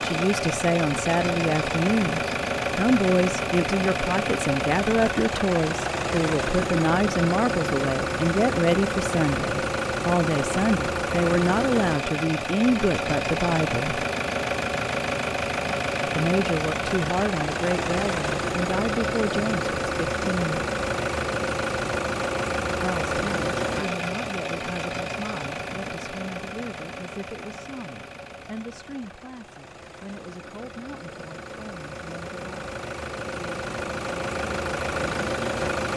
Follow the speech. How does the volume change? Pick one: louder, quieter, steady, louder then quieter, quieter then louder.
quieter.